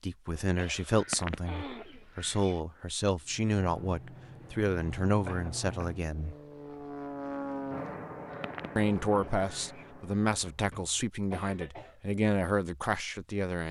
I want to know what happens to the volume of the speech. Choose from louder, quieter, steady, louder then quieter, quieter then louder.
steady.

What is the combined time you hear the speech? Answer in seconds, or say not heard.
11 s.